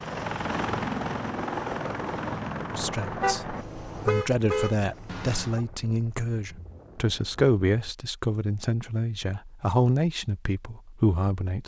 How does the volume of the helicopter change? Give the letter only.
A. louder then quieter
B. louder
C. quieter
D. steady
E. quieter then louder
C.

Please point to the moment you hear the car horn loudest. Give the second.
4 s.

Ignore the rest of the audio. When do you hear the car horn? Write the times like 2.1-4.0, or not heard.
3.2-5.6.